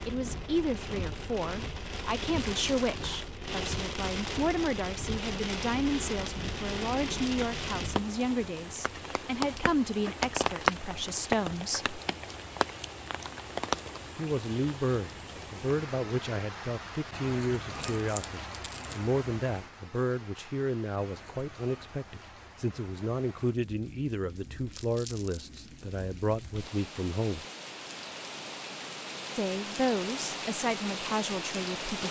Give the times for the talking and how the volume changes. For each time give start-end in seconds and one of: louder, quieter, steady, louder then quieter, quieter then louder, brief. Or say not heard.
0.1-11.9 steady
14.2-27.4 steady
29.4-32.0 brief.